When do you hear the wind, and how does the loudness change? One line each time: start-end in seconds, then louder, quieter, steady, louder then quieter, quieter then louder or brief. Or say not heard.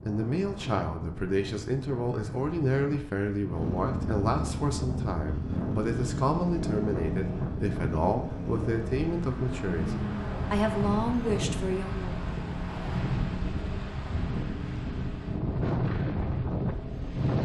0.0-17.4 louder.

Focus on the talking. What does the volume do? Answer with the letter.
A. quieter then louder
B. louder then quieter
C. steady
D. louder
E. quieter
C.